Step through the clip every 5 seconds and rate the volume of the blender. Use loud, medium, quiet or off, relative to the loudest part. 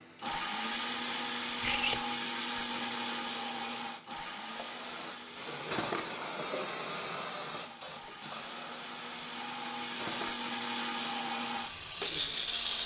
loud, medium, loud.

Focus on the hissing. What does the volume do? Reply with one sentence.
The loudness of the hissing goes up, then down.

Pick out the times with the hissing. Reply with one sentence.
You can hear the hissing from 0.0 to 12.8 s.